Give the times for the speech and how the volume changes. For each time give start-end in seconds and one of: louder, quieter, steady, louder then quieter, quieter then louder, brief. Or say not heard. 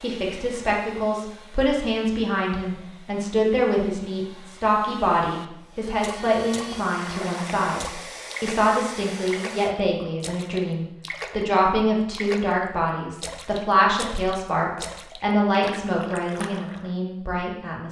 0.0-17.8 steady.